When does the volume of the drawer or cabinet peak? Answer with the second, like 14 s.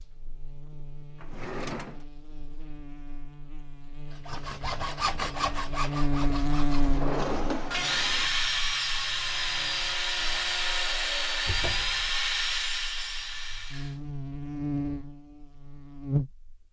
7 s.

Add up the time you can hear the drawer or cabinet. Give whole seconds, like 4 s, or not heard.
3 s.